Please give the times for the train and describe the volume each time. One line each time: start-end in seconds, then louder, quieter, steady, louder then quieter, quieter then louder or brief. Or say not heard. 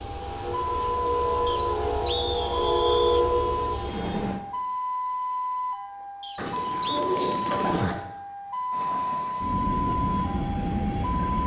0.0-4.4 louder then quieter
8.7-11.4 brief.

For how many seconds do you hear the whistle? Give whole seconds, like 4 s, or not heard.
3 s.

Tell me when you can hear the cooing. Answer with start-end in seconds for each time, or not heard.
6.3-8.0.